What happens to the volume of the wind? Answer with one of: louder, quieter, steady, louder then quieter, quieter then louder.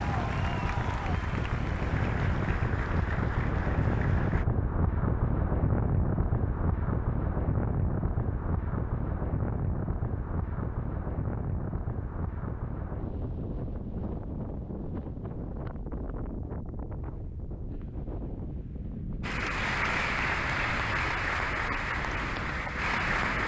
quieter.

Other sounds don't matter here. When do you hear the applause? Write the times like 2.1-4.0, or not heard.
0.0-4.5, 19.2-23.4.